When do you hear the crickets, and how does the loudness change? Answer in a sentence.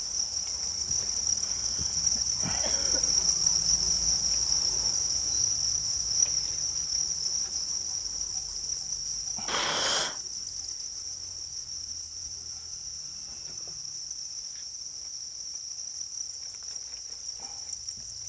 The crickets can be heard from 0.0 to 18.2 s, getting quieter.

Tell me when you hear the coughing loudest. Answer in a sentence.
The loudest moment of the coughing is at 10 seconds.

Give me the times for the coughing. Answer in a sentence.
The coughing can be heard from 1.4 to 3.2 s and from 9.4 to 10.2 s.